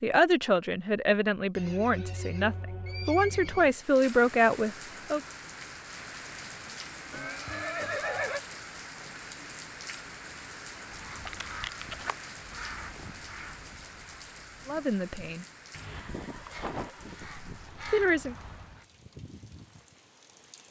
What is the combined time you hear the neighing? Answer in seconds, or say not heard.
5 s.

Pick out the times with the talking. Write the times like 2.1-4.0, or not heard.
0.0-5.2, 14.7-15.4, 17.2-18.4.